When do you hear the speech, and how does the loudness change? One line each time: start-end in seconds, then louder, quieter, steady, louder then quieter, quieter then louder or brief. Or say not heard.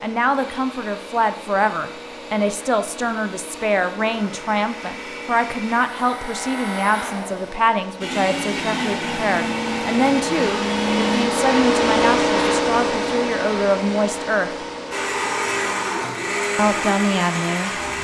0.0-14.6 steady
16.6-17.7 brief.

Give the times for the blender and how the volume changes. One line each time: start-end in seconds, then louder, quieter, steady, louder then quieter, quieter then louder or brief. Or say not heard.
0.2-11.2 louder
14.9-17.9 brief.